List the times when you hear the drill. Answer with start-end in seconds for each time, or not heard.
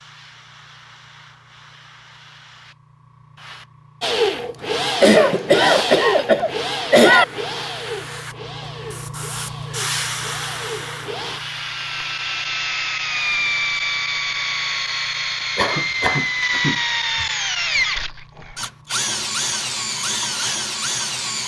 4.0-21.4.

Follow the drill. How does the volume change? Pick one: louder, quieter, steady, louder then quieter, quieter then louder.
quieter then louder.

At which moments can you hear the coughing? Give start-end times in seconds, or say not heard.
5.0-7.2, 15.6-17.2.